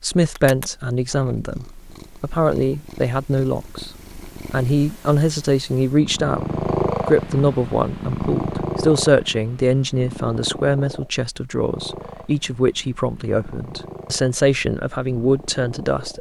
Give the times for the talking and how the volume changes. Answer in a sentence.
You can hear the talking from 0.0 to 16.1 s, at a steady volume.